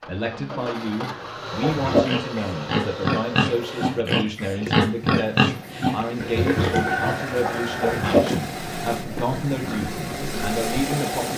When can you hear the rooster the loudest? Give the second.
7 s.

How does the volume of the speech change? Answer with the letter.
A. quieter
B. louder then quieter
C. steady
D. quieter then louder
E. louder
C.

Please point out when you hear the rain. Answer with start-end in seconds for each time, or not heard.
not heard.